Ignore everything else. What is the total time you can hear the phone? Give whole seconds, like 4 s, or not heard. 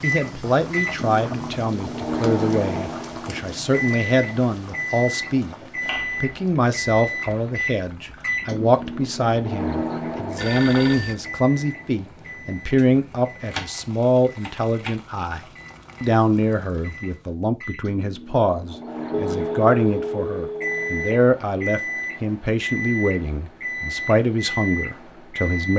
3 s.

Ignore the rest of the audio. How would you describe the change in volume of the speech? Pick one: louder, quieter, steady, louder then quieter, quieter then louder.
steady.